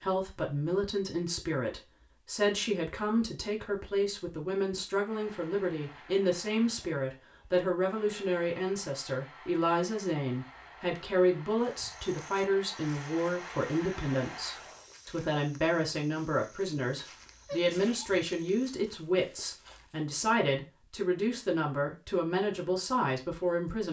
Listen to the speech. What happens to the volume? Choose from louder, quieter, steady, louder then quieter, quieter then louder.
steady.